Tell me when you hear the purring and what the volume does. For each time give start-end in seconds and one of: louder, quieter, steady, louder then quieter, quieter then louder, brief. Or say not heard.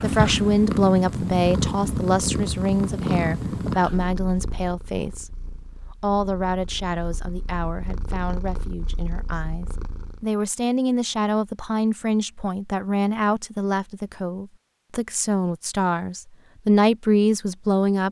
0.0-10.2 quieter then louder.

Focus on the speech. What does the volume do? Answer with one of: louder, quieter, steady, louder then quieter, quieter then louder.
quieter then louder.